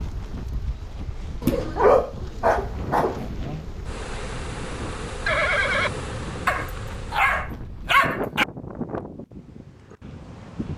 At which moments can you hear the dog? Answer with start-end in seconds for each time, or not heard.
1.4-3.3, 6.5-8.4.